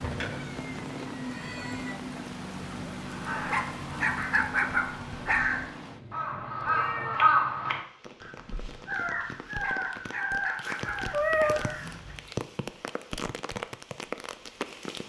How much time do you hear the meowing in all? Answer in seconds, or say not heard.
4 s.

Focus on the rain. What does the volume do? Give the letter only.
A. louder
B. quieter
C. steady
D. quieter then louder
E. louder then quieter
D.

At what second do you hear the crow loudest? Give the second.
7 s.